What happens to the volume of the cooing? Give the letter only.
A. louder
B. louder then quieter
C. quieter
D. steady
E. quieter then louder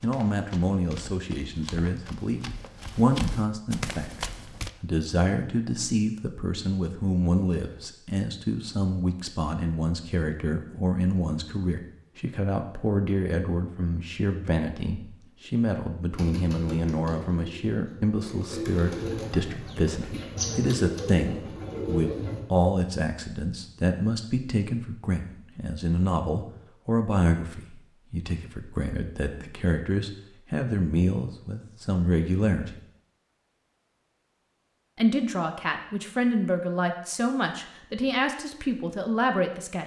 A.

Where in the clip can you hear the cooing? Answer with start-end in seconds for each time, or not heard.
16.1-22.4.